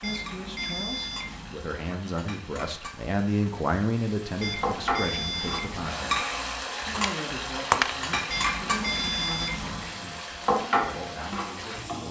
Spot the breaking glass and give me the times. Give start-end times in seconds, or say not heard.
6.9-8.1.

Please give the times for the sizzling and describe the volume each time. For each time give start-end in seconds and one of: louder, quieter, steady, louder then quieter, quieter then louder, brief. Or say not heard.
0.0-12.0 louder.